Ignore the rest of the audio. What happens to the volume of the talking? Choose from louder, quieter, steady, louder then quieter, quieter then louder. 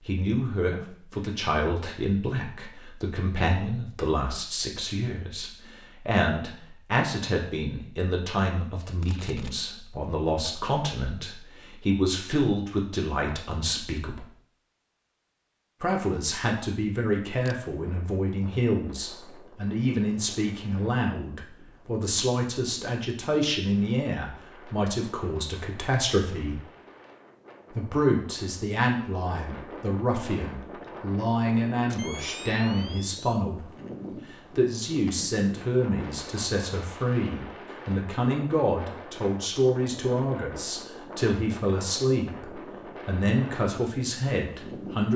steady.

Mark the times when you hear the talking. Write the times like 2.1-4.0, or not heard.
0.0-14.2, 15.8-26.6, 27.7-33.7, 34.3-45.1.